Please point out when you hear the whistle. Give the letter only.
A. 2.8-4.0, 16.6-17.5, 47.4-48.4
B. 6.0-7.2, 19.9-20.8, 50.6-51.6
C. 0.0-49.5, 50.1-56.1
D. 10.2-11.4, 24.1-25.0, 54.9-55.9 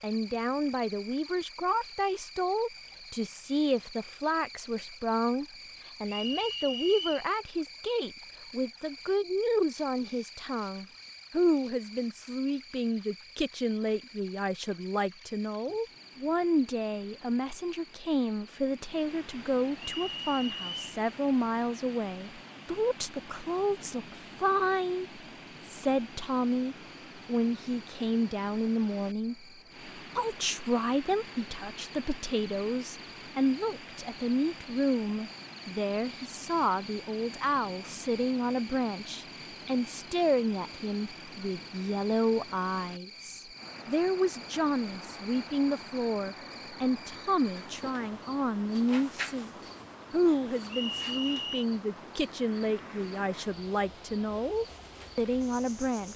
B.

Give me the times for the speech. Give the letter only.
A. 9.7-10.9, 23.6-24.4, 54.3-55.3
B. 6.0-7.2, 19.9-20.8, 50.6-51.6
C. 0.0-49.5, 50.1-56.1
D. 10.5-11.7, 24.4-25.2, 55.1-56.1
C.